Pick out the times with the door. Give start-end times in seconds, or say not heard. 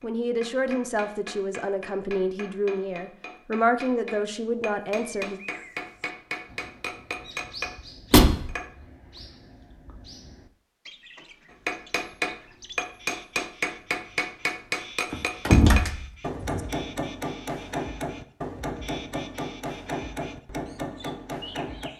8.1-8.5, 15.1-16.6.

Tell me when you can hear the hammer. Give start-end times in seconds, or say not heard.
0.0-8.7, 11.5-21.9.